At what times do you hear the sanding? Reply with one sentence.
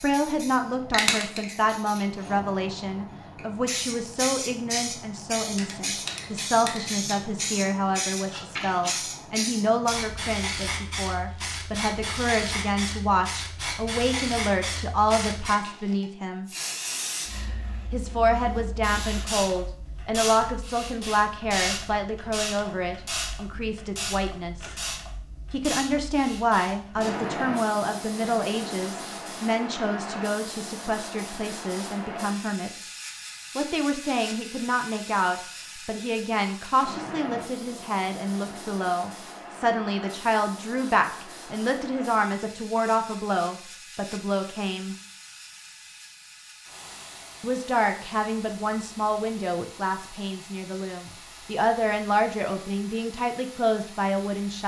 You can't hear the sanding here.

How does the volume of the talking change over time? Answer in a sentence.
The volume of the talking stays about the same.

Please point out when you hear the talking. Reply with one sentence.
The talking can be heard from 0.0 to 16.5 s, from 17.9 to 24.8 s, from 25.5 to 32.9 s, from 33.5 to 45.0 s and from 47.4 to 54.6 s.